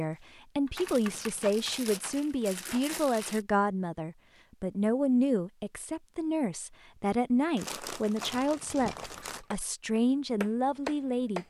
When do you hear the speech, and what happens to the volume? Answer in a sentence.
You can hear the speech from 0.0 to 11.4 s, at a steady volume.